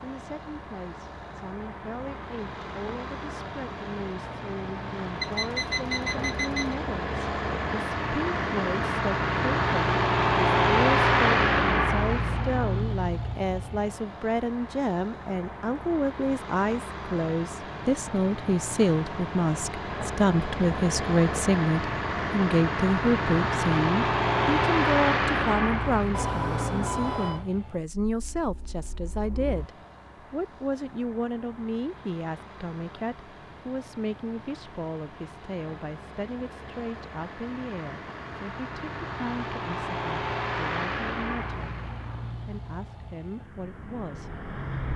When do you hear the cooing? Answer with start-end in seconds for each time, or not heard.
not heard.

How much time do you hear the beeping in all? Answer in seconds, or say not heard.
3 s.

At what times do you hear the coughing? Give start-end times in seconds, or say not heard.
not heard.